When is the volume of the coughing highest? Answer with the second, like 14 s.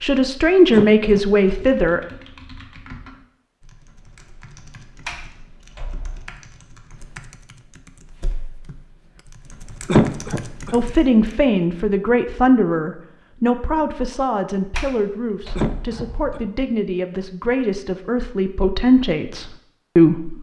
10 s.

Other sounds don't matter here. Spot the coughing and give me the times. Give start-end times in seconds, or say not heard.
0.7-1.6, 9.8-10.8, 15.6-16.5.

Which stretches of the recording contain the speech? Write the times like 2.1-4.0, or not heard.
0.0-2.0, 10.7-20.3.